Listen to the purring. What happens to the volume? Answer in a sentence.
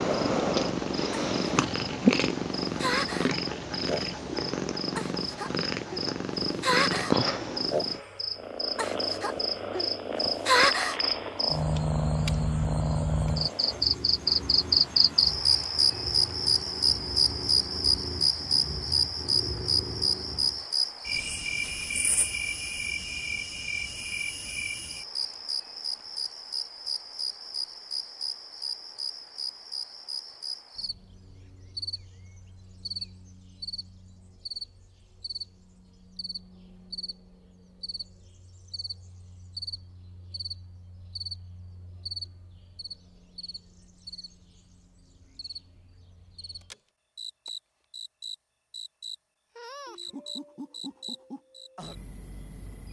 The volume of the purring goes down.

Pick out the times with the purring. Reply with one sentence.
The purring can be heard from 0.0 to 20.6 s.